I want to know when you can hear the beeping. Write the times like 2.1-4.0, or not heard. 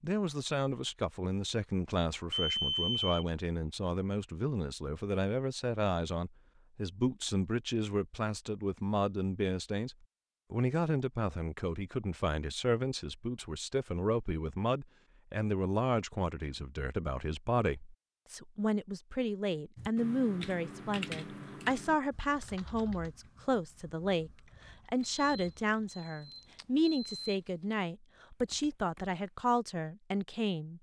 1.9-3.1, 25.0-27.4.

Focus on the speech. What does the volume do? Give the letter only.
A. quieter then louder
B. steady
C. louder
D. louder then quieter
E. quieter
B.